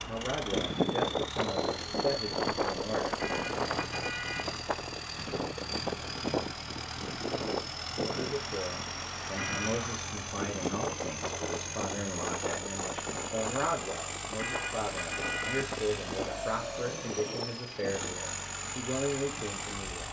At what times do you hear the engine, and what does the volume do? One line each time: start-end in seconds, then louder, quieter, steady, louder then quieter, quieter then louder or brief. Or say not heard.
0.0-20.0 steady.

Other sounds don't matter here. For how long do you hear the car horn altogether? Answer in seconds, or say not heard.
3 s.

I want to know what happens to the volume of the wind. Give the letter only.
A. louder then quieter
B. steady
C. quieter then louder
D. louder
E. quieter
E.